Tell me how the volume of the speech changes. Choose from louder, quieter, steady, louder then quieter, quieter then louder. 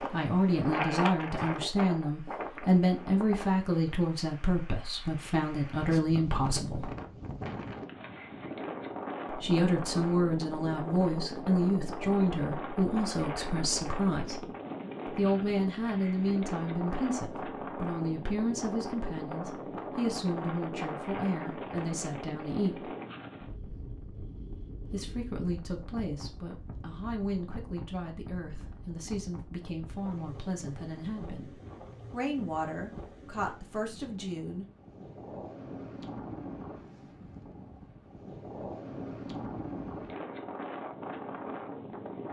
quieter.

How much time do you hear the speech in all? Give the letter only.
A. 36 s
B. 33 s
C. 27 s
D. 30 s
D.